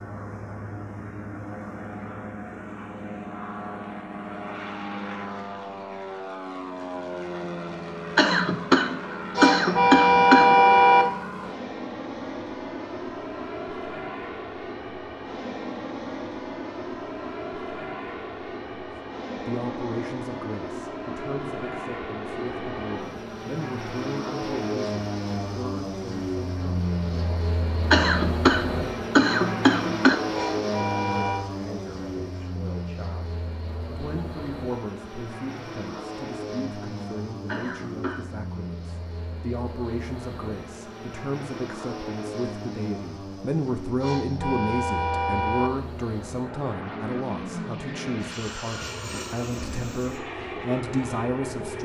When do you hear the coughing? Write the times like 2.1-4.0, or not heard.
8.2-10.6, 27.9-30.2, 37.5-38.4.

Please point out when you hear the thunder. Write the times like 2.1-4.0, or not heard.
not heard.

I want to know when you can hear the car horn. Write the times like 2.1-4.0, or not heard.
9.3-11.1, 30.3-31.4, 44.0-45.7.